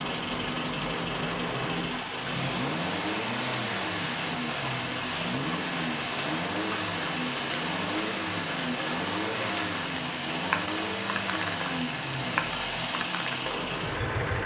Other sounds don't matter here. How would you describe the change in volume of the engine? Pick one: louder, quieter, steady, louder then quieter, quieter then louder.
steady.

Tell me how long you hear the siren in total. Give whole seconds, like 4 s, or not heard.
not heard.